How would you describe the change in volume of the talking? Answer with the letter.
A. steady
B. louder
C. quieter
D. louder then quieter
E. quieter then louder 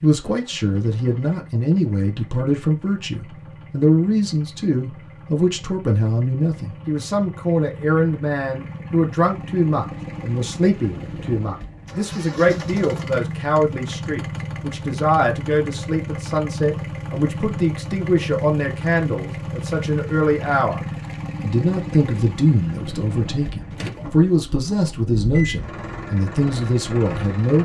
A.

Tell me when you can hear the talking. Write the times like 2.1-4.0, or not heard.
0.0-20.8, 21.4-27.5.